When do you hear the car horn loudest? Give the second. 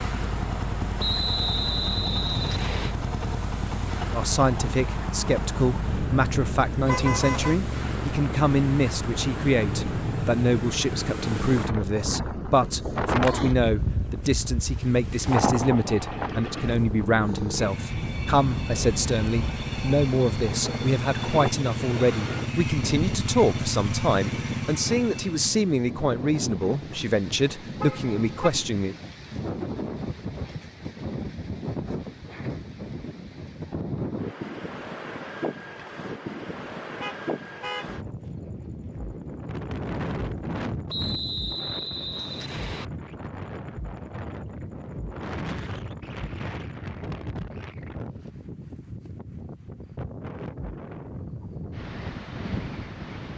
7 s.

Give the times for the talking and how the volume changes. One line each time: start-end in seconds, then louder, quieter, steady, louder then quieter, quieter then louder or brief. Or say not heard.
4.1-28.9 steady.